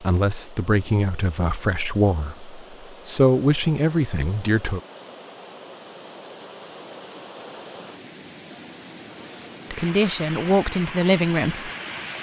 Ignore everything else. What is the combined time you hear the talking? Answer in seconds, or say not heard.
7 s.